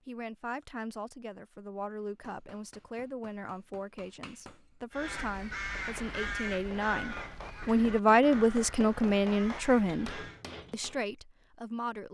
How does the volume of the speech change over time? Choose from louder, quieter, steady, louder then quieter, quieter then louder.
louder then quieter.